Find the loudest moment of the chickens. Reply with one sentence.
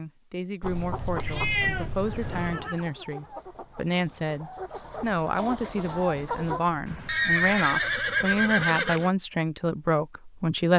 The loudest moment of the chickens is at 6 seconds.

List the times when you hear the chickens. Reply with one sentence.
The chickens can be heard from 0.6 to 6.7 s.